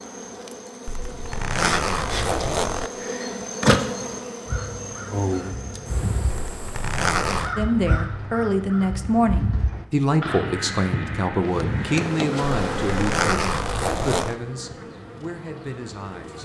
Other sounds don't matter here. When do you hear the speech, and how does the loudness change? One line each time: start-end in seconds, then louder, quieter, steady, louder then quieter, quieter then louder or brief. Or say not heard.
7.5-16.4 quieter.